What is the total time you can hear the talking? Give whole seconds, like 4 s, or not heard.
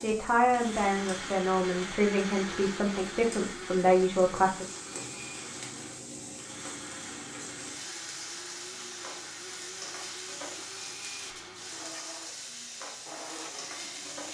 5 s.